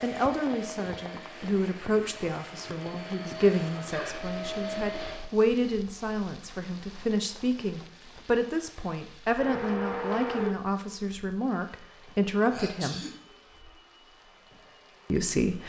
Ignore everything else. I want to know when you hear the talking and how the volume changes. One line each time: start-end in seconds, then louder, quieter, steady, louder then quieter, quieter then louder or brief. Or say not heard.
0.0-13.1 steady
15.1-15.6 brief.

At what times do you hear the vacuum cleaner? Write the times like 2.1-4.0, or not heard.
0.0-5.2, 9.3-15.6.